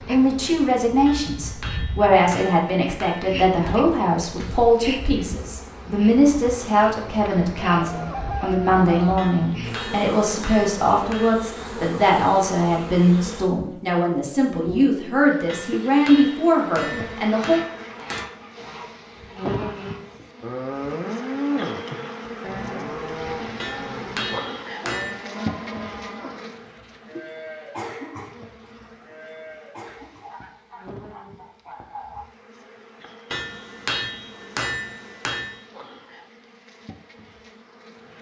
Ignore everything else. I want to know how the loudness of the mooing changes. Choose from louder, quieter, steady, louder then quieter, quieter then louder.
quieter.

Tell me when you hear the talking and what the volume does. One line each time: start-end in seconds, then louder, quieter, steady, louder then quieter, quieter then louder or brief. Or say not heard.
0.1-17.6 steady.